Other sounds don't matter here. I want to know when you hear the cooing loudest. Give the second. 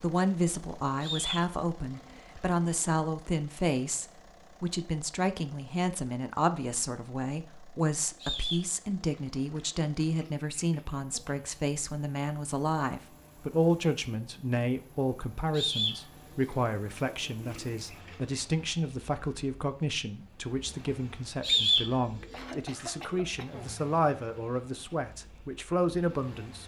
22 s.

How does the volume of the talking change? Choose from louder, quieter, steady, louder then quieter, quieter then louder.
steady.